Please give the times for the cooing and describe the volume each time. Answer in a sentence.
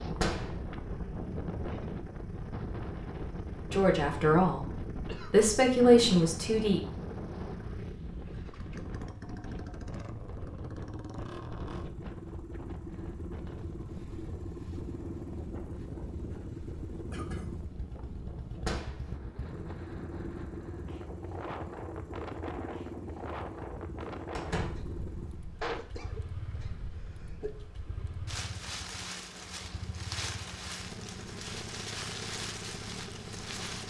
You can't hear the cooing here.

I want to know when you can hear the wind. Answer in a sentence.
You can hear the wind from 0.0 to 33.8 s.